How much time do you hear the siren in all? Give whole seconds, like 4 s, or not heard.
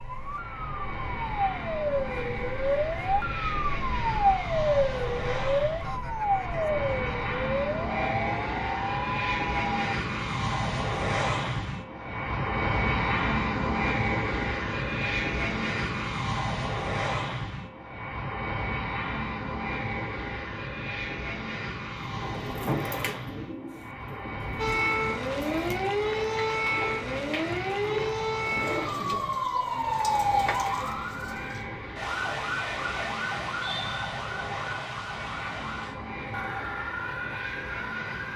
24 s.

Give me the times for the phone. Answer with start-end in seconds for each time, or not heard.
not heard.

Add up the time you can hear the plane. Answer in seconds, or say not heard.
38 s.